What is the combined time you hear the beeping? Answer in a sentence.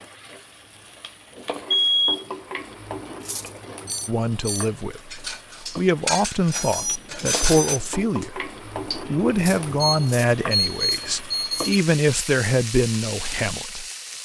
You can hear the beeping for 4 seconds altogether.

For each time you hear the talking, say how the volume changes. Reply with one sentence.
The talking can be heard from 4.0 to 13.8 s, at a steady volume.